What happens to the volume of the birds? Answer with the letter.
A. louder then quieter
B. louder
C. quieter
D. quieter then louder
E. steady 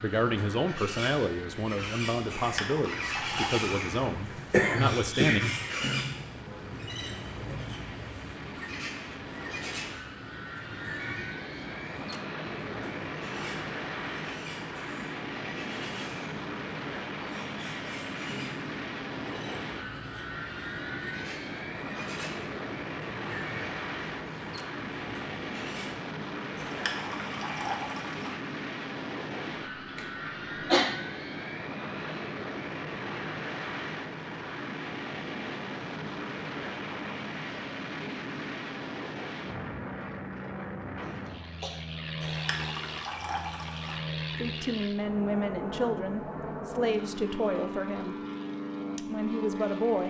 C.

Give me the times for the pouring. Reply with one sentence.
You can hear the pouring from 2.4 to 4.1 s, from 26.6 to 28.4 s and from 42.2 to 44.0 s.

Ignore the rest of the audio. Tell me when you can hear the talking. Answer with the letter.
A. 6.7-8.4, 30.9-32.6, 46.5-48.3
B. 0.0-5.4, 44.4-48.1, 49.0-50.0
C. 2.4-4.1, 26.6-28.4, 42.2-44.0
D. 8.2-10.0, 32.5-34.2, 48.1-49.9
B.